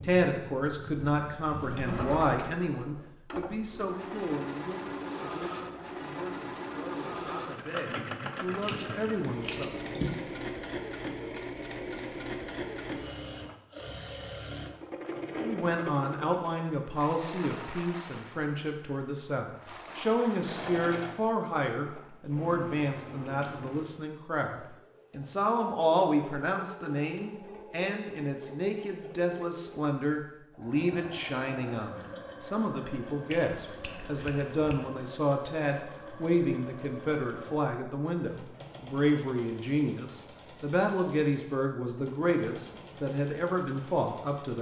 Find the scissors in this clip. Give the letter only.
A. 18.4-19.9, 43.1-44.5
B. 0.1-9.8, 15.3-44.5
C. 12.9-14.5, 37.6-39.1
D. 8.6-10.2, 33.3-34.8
D.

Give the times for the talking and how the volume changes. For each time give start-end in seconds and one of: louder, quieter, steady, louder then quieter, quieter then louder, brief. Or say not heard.
0.1-9.8 quieter then louder
15.3-44.5 steady.